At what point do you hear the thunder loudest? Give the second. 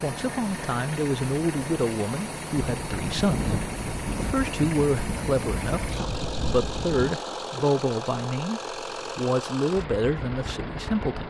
3 s.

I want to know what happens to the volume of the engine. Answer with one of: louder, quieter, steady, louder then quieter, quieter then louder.
steady.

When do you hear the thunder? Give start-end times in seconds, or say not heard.
2.5-7.2.